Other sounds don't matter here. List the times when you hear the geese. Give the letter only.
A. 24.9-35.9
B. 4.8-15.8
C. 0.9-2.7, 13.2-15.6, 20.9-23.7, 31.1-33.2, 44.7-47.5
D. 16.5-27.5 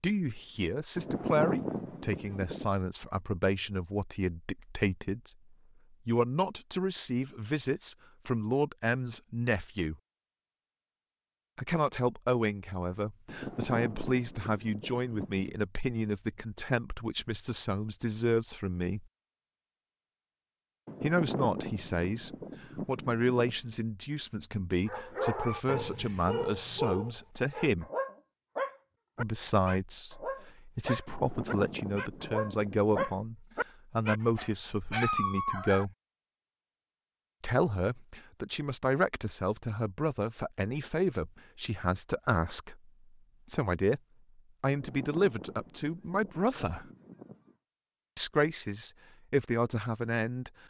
C.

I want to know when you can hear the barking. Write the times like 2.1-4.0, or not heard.
24.9-35.9.